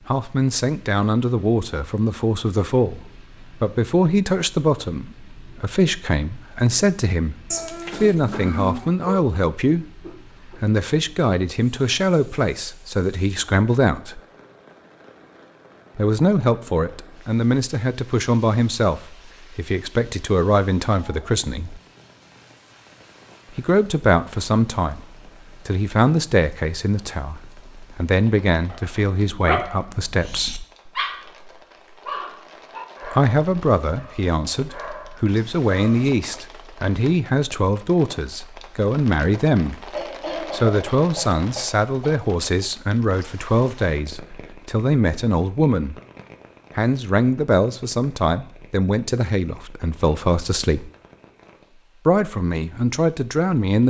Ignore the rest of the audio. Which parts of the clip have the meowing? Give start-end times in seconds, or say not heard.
7.5-8.9.